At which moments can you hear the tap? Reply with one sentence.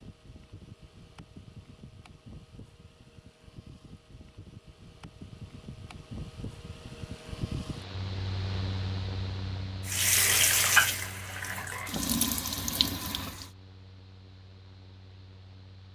The tap can be heard from 9.8 to 13.5 s.